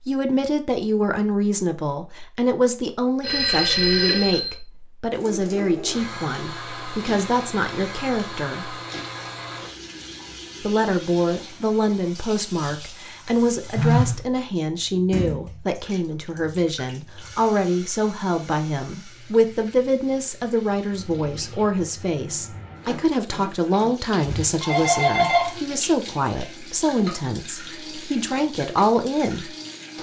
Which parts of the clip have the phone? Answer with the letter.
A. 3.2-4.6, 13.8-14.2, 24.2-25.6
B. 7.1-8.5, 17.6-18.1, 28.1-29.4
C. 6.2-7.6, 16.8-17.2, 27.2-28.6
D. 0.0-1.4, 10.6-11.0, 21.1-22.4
A.